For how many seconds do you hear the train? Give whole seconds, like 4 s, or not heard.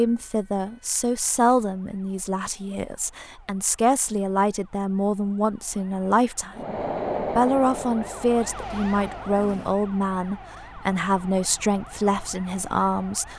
3 s.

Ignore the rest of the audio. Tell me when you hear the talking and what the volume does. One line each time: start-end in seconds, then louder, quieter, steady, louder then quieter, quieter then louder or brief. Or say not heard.
0.0-13.3 steady.